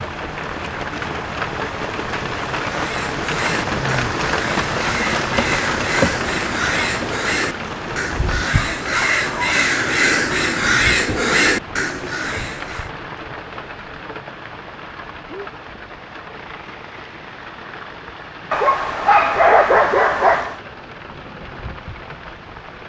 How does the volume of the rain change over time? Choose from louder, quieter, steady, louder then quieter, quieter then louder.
quieter.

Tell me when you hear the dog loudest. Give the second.
20 s.